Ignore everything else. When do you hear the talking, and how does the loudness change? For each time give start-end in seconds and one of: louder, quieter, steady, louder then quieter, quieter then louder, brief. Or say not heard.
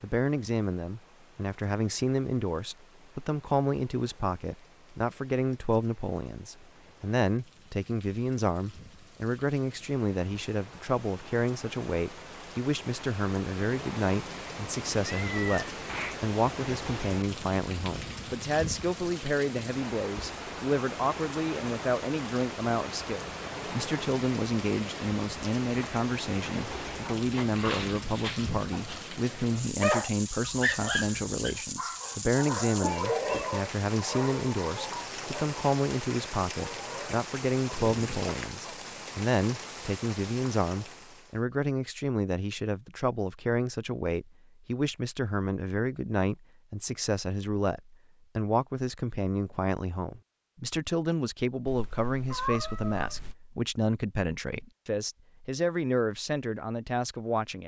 0.0-57.6 steady.